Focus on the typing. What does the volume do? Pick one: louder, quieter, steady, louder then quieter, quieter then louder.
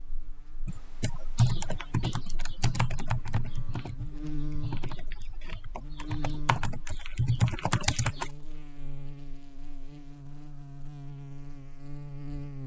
quieter then louder.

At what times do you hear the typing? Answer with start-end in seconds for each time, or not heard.
0.7-8.3.